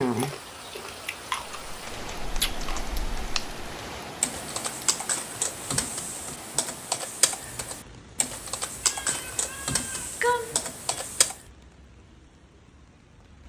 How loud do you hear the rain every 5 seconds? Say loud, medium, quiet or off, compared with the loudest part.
loud, medium, quiet.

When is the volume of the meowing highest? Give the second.
10 s.